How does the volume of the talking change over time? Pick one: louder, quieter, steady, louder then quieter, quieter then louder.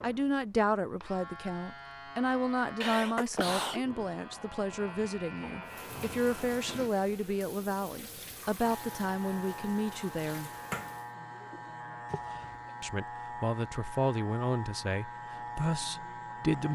steady.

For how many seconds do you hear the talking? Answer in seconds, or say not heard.
14 s.